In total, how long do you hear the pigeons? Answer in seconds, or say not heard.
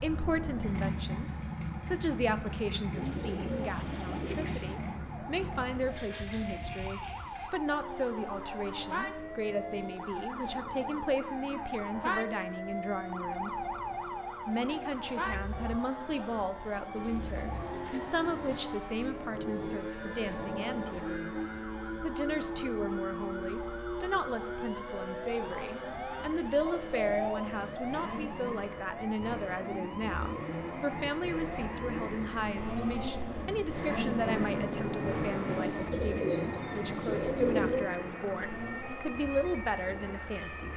8 s.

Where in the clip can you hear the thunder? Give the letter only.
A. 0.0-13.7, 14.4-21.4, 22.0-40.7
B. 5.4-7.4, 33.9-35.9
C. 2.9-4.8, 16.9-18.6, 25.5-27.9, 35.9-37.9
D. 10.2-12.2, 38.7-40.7
B.